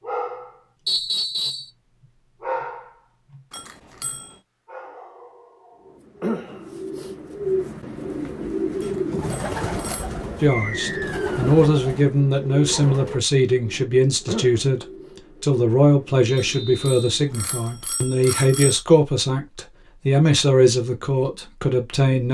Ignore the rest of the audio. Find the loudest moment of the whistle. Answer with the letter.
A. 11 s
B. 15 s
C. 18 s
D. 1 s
D.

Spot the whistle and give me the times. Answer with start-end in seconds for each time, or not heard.
0.8-1.7, 10.4-11.4, 16.4-17.1.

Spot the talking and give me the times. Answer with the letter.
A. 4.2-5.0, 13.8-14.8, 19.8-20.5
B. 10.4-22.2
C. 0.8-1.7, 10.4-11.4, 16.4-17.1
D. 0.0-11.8
B.